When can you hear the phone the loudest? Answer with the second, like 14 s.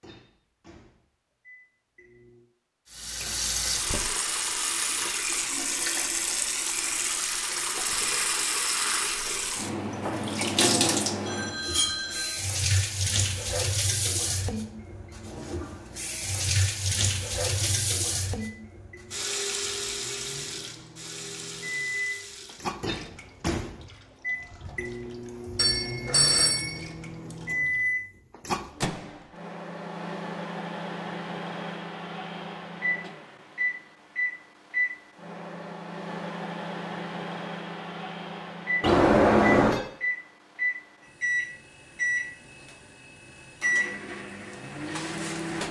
39 s.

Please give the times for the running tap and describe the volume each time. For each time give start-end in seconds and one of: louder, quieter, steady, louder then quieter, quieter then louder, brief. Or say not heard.
2.9-27.9 quieter.